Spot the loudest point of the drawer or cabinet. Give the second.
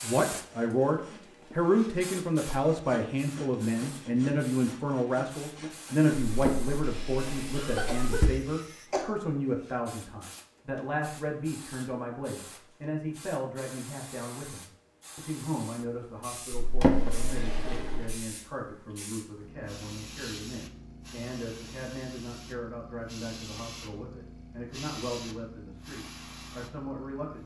17 s.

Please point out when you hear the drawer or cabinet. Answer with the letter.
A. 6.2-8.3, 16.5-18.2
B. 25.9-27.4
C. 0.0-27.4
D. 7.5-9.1
A.